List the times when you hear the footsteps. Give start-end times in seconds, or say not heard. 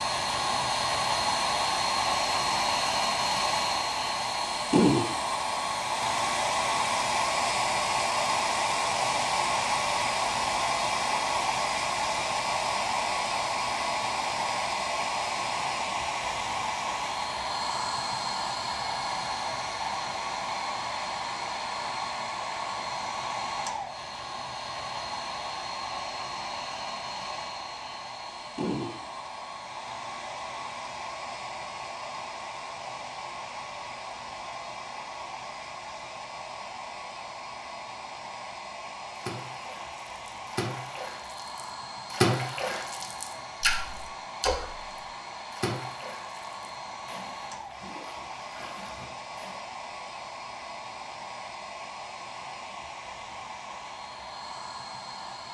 not heard.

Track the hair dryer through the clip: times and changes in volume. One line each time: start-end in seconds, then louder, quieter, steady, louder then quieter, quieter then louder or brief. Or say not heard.
0.0-55.5 quieter.